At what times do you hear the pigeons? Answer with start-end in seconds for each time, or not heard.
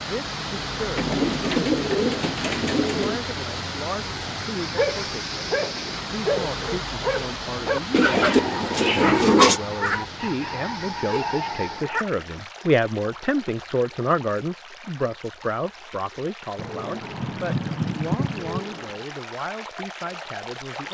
0.9-3.2, 7.9-9.6, 16.6-19.0.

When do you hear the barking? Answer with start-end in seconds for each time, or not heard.
4.2-12.1.